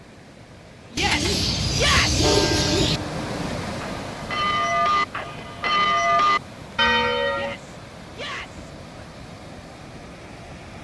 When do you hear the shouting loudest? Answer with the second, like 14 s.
2 s.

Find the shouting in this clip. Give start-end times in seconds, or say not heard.
0.9-2.2, 7.3-8.7.